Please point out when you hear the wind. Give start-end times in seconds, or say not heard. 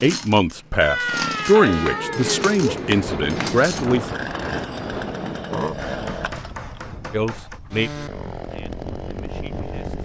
2.5-10.0.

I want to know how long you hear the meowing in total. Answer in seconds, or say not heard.
2 s.